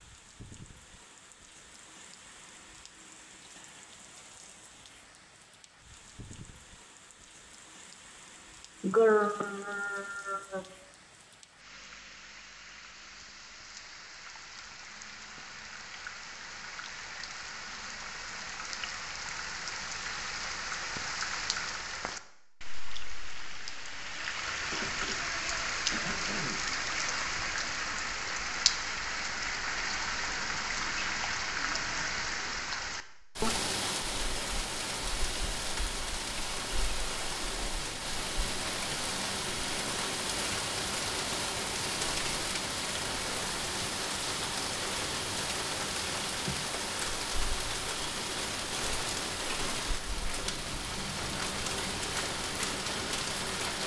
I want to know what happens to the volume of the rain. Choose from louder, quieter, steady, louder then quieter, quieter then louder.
louder.